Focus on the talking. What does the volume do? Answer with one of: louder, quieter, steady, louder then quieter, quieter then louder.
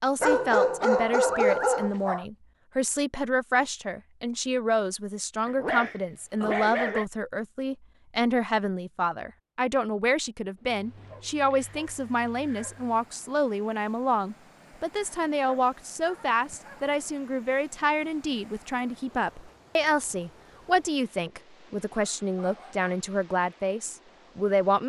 steady.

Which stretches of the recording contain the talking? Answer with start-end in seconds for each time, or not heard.
0.0-24.8.